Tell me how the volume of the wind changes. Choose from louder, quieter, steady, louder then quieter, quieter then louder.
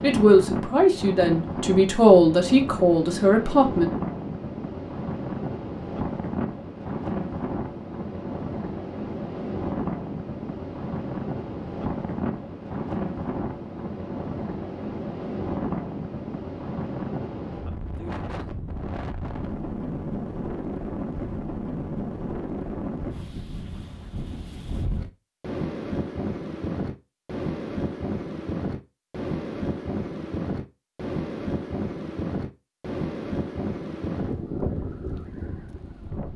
steady.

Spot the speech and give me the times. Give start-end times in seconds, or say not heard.
0.0-3.9.